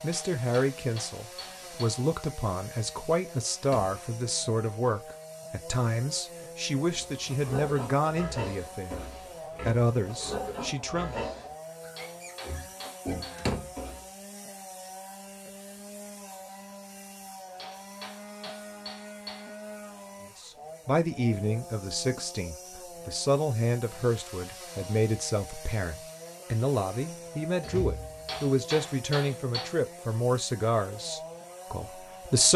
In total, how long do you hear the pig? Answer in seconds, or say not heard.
7 s.